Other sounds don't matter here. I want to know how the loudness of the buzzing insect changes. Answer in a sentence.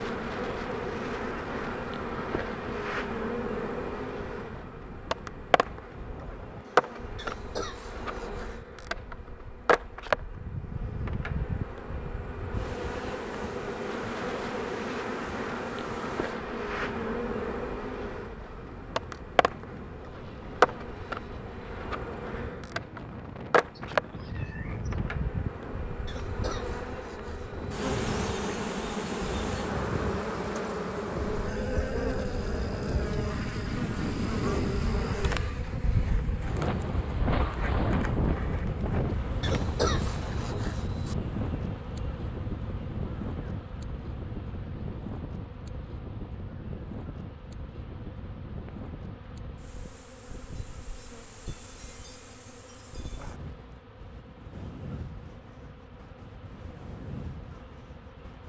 The volume of the buzzing insect goes down.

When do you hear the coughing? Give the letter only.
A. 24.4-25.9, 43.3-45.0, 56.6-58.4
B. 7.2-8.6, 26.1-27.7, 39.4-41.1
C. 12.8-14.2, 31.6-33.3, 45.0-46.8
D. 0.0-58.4
B.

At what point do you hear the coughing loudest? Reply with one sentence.
The loudest moment of the coughing is at 40 seconds.